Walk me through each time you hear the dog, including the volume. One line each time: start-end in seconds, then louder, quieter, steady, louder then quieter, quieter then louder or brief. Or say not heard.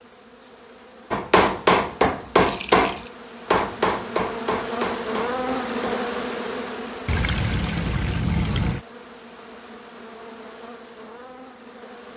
not heard.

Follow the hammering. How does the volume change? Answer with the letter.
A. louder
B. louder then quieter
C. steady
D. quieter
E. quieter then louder
D.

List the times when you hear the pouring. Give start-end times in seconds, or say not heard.
2.4-3.1, 7.0-8.8.